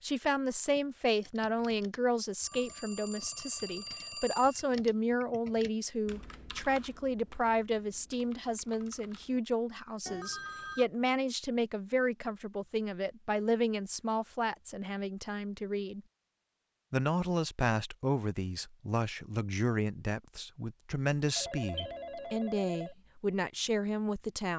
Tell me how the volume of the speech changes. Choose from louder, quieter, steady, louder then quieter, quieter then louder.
steady.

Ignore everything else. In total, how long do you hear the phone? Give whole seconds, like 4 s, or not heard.
5 s.